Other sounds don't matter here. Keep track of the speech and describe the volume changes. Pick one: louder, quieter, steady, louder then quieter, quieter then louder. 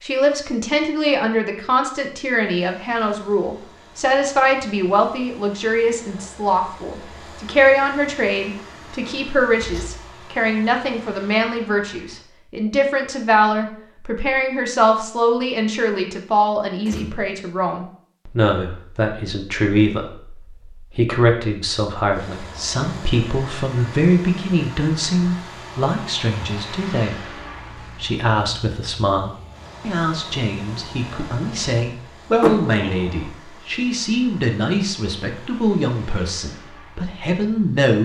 steady.